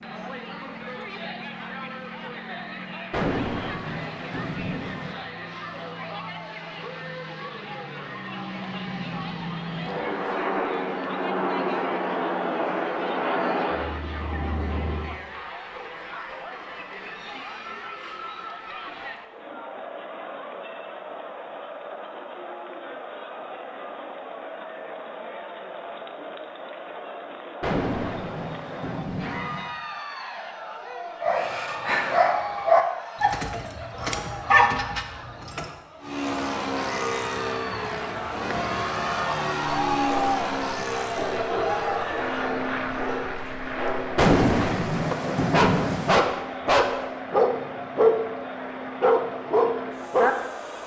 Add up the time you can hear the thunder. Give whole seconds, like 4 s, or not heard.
6 s.